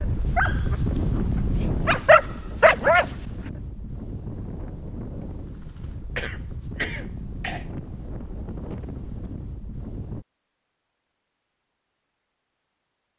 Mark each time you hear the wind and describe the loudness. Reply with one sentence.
The wind can be heard from 0.0 to 10.2 s, getting quieter.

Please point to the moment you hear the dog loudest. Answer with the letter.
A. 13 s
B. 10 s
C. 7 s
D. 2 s
D.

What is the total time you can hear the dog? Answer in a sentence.
The dog can be heard for 3 seconds in total.